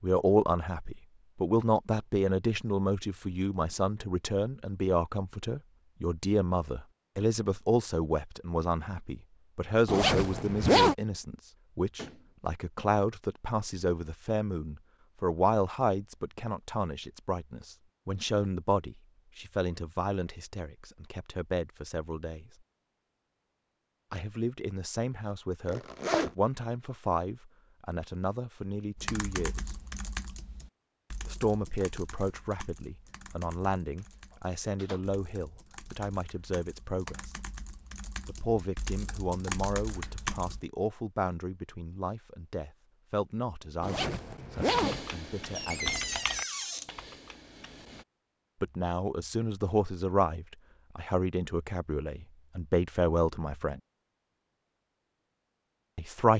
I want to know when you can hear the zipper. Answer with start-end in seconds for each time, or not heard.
9.8-10.9, 25.6-26.3, 43.8-45.0.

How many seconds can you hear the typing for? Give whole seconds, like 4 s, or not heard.
15 s.